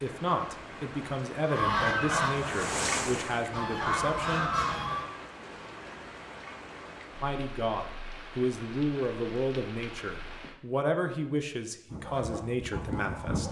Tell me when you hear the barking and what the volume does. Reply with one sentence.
The barking can't be heard in this clip.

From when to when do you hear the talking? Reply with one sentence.
The talking can be heard from 0.0 to 4.5 s and from 7.2 to 13.4 s.